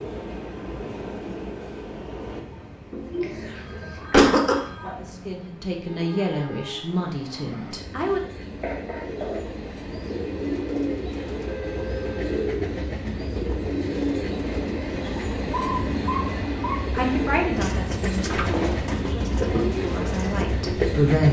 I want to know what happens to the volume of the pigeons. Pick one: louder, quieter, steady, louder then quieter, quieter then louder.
steady.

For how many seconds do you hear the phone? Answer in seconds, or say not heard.
3 s.